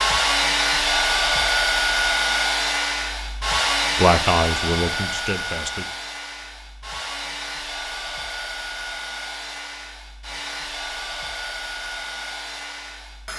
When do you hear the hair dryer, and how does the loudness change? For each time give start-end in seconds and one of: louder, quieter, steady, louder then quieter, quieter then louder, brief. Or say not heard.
0.0-13.3 quieter.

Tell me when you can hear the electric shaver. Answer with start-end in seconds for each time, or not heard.
not heard.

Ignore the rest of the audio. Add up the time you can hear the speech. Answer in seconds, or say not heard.
2 s.